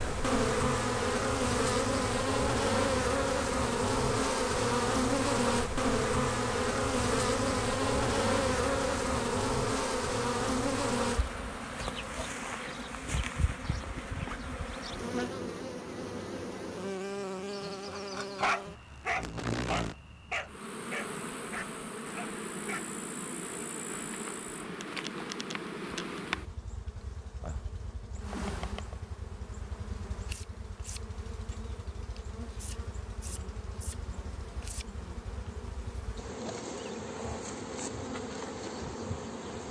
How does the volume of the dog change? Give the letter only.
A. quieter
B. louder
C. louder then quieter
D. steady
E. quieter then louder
A.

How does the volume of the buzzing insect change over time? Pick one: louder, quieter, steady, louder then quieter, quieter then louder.
quieter.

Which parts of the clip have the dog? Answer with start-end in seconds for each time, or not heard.
17.4-22.9.